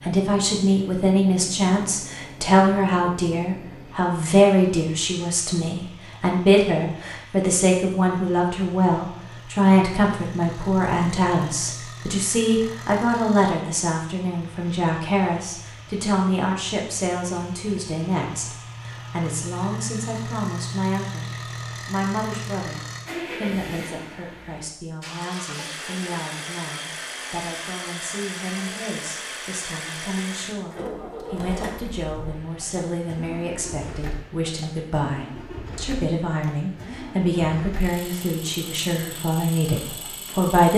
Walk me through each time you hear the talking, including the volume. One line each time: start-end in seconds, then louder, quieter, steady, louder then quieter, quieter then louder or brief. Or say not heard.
0.0-40.7 quieter then louder.